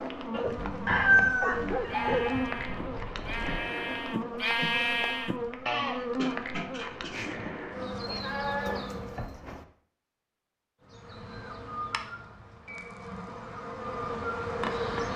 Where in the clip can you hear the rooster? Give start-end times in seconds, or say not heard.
0.8-2.4.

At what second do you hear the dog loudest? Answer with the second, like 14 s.
2 s.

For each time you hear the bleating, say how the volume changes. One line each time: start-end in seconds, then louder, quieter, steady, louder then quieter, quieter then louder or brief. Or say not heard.
0.3-9.7 louder then quieter.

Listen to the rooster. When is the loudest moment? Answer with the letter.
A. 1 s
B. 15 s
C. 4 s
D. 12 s
A.